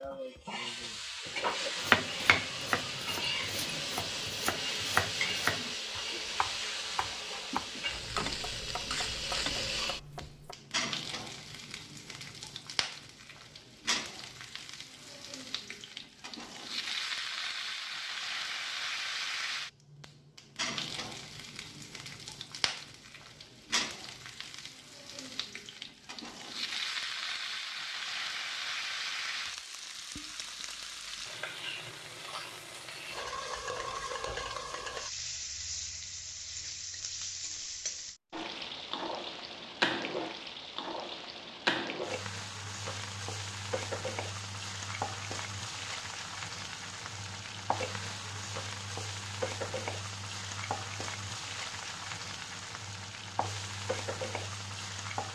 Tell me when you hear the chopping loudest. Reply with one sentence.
The volume of the chopping peaks at 2 seconds.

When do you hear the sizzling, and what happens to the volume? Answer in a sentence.
You can hear the sizzling from 0.0 to 55.3 s, at a steady volume.